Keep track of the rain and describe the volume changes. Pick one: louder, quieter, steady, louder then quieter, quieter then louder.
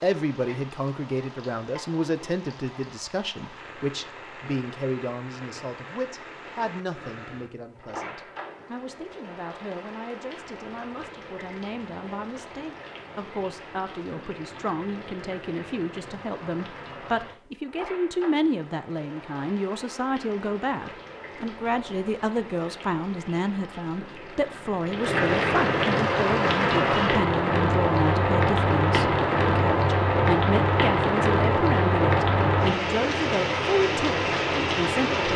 louder.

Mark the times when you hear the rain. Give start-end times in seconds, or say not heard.
0.0-35.3.